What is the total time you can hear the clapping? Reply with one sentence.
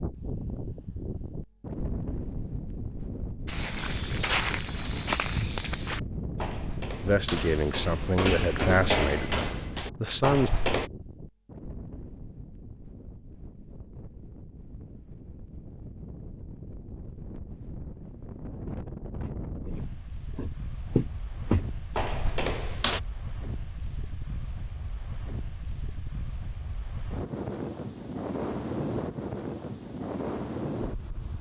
The clapping can't be heard in this clip.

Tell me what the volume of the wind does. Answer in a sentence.
The volume of the wind goes down, then up.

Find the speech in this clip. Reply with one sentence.
You can hear the speech from 7.0 to 10.5 s.